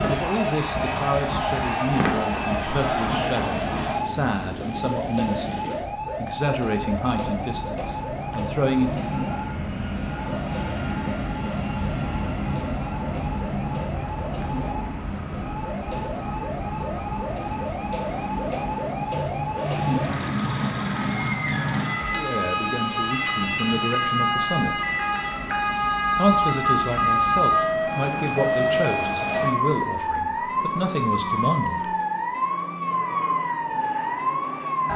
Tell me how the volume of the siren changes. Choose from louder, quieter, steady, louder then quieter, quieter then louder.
quieter then louder.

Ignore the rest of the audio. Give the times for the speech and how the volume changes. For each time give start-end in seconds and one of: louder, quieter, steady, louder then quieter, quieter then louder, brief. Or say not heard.
0.1-9.1 steady
22.1-24.8 brief
26.1-31.9 steady.